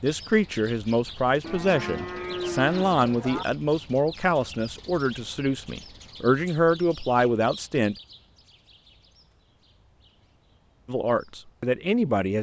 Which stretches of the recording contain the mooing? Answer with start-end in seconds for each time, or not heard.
1.4-3.5.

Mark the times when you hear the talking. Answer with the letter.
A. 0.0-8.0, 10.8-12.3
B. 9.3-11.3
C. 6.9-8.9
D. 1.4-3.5
A.